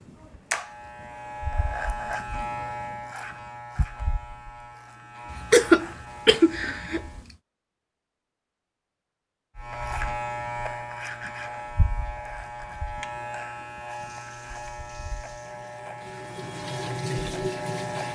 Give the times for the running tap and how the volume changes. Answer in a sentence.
The running tap can be heard from 13.8 to 18.1 s, getting louder.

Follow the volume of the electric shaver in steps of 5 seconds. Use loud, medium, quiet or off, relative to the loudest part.
loud, medium, loud, loud.